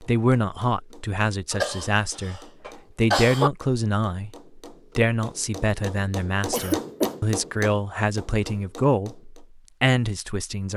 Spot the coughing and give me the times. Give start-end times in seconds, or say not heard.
1.5-3.5, 6.5-7.2.